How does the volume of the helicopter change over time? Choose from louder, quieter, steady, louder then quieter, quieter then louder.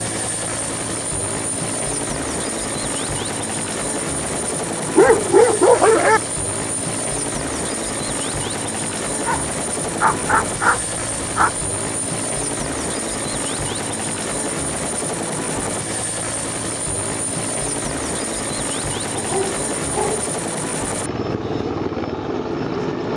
steady.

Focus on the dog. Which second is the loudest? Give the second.
6 s.